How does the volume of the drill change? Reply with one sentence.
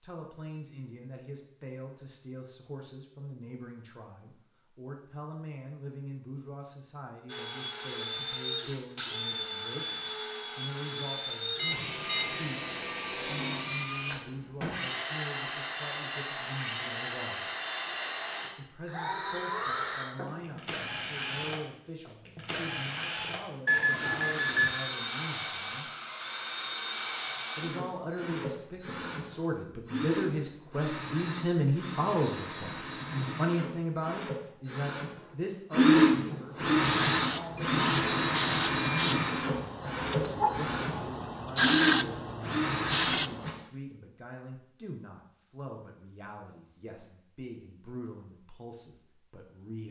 The volume of the drill goes up.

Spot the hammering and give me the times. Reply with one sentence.
The hammering can't be heard in this clip.